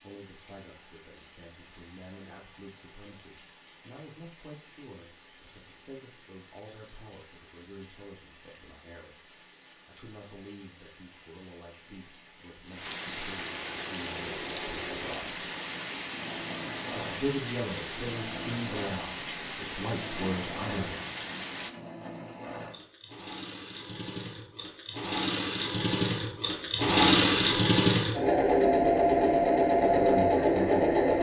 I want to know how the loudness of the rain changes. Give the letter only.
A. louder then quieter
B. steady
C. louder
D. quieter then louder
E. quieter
C.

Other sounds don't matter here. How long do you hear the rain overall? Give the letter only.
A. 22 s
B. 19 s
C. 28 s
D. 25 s
A.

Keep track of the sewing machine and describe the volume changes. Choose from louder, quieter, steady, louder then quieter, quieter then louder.
louder.